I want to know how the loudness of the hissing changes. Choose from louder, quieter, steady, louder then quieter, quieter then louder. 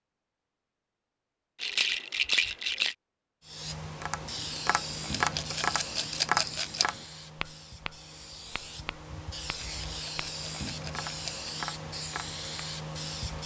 quieter then louder.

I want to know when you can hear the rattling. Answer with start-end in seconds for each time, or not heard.
1.6-3.0, 5.1-6.8, 9.6-11.5.